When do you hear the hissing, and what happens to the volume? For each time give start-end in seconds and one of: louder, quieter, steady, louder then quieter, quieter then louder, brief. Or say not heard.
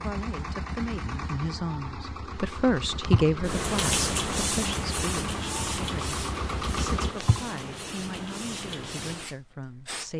3.3-10.1 quieter.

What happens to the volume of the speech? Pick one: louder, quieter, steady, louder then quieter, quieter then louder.
louder then quieter.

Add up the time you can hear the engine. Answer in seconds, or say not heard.
7 s.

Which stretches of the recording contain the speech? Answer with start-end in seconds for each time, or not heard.
0.0-10.1.